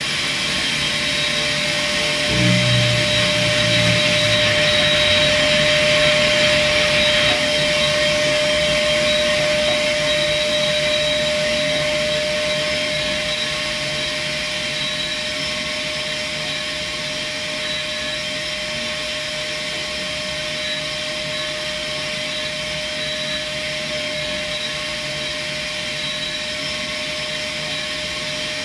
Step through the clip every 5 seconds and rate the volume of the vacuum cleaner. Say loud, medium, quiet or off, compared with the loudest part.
loud, loud, loud, medium, medium, medium.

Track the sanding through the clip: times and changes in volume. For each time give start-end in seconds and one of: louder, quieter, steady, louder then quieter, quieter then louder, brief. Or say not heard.
2.2-7.3 steady.